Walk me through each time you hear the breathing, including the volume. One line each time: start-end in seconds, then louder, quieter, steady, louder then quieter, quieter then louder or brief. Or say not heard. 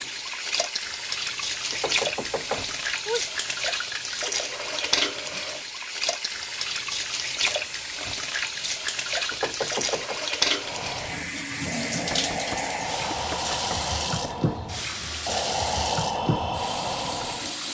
10.6-17.6 louder.